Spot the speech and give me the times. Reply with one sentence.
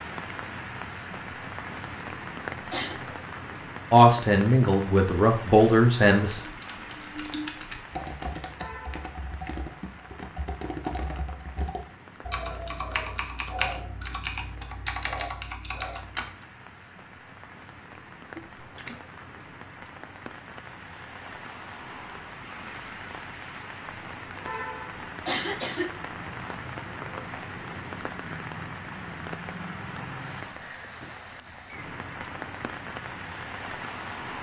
The speech can be heard from 3.9 to 6.4 s.